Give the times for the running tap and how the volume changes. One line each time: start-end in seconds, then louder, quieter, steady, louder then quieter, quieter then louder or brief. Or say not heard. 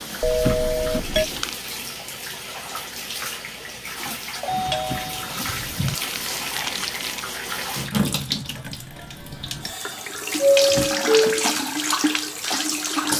0.0-13.1 louder.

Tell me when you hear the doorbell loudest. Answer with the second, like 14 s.
11 s.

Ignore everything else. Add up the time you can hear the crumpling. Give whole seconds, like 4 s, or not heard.
4 s.